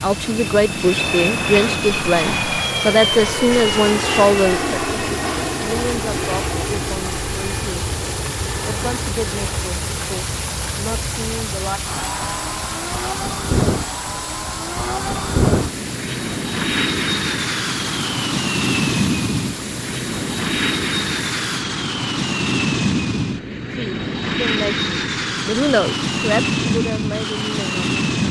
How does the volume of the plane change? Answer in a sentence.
The volume of the plane goes down, then up.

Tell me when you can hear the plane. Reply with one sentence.
The plane can be heard from 0.0 to 28.2 s.